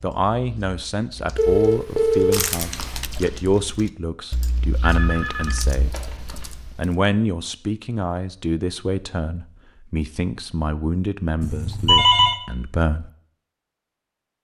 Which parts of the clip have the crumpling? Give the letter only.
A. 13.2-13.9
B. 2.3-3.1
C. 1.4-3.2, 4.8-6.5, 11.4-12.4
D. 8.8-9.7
B.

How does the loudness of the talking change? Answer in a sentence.
The volume of the talking stays about the same.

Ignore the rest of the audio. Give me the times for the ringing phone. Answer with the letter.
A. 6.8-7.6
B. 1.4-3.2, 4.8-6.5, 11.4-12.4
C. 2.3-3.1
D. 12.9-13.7
B.